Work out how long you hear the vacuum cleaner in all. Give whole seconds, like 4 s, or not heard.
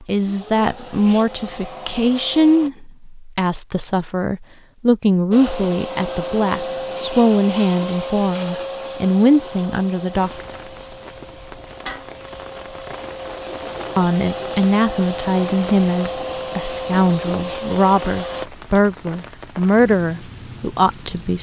16 s.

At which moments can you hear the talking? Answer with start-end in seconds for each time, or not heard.
0.0-10.4, 13.9-21.3.